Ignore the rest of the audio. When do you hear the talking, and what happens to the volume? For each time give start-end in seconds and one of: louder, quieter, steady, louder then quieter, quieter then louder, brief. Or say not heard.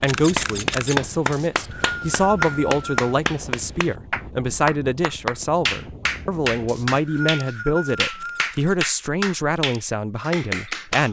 0.0-11.0 steady.